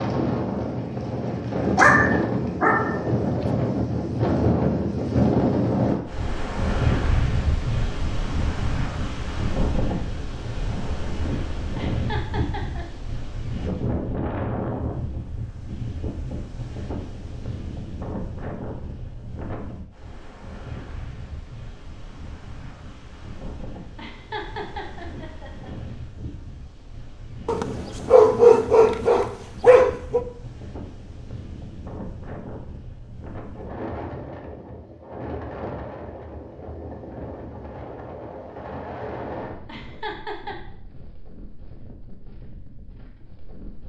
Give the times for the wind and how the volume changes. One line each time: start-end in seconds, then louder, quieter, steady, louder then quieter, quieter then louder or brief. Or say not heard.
0.0-43.8 quieter.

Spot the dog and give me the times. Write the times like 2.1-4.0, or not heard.
1.8-3.0, 27.4-30.2.